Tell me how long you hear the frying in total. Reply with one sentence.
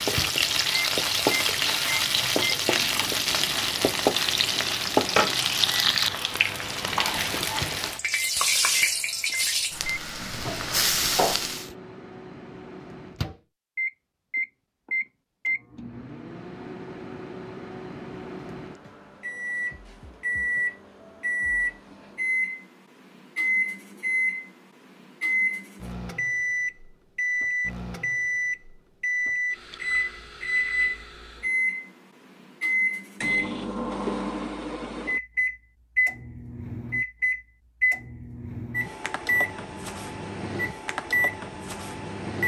The frying can be heard for 12 seconds in total.